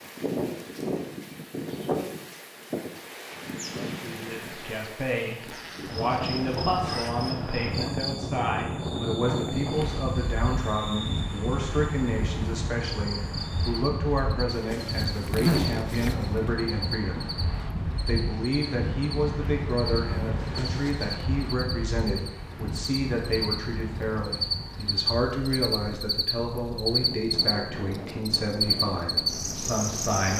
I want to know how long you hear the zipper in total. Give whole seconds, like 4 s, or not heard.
5 s.